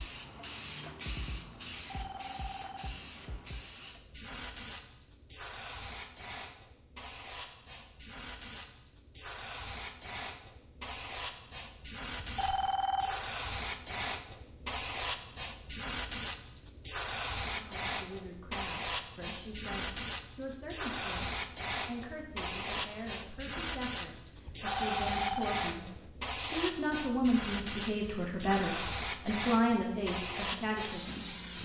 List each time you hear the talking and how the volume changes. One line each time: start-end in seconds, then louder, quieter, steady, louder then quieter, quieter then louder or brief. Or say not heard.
17.5-31.6 louder.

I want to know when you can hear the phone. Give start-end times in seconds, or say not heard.
1.7-3.5, 12.2-13.2, 24.4-26.1.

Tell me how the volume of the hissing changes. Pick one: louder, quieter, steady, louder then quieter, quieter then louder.
louder.